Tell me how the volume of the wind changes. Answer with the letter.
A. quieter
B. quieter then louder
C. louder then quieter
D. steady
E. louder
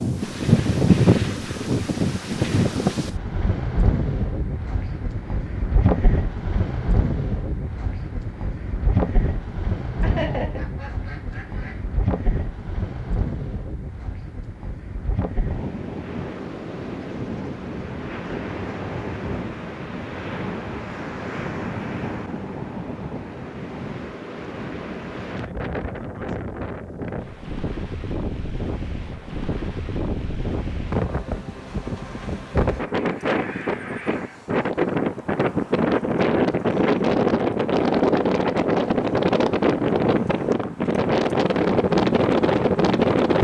B.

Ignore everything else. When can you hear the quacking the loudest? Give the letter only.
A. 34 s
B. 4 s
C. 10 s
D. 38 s
C.